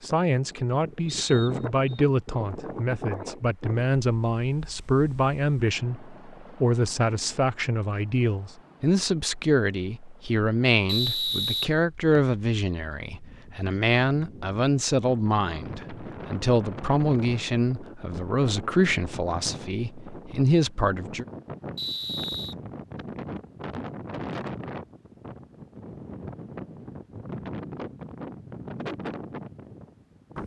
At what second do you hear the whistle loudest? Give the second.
11 s.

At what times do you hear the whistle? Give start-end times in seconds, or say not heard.
1.1-2.0, 10.8-12.3, 21.8-22.6.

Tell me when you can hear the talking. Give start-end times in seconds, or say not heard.
0.0-21.2.